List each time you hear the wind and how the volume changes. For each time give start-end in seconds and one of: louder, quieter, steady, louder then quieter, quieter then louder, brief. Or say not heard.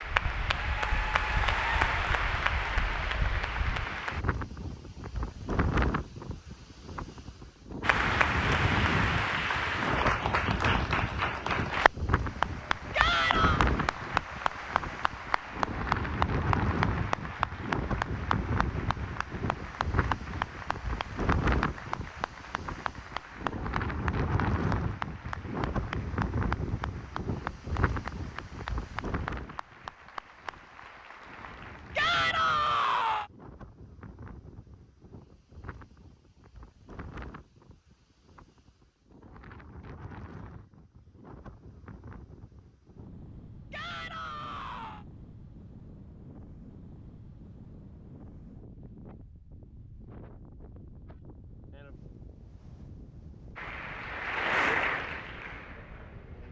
0.0-56.4 quieter.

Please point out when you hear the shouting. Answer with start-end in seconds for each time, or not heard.
12.9-13.6, 31.9-33.3, 43.7-45.0.